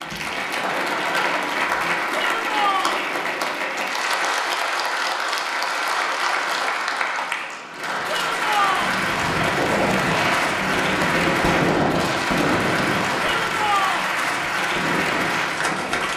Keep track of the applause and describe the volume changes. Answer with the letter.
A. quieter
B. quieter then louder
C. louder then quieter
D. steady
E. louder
D.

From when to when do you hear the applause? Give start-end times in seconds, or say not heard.
0.0-16.1.